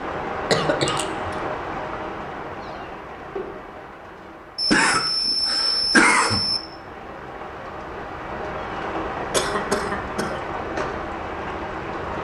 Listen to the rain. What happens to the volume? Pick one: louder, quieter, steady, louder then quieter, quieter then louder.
quieter then louder.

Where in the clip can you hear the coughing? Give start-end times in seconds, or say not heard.
0.5-1.4, 4.5-6.6, 9.3-10.4.